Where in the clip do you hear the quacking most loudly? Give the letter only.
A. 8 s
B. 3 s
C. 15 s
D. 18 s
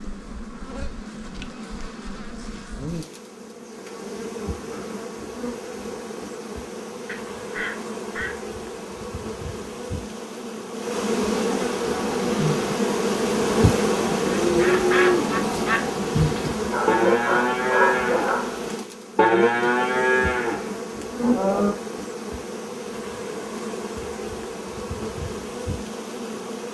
C.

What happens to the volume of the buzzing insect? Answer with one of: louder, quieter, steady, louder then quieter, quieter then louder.
louder then quieter.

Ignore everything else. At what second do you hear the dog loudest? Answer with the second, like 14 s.
18 s.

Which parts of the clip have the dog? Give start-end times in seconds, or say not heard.
16.6-18.6.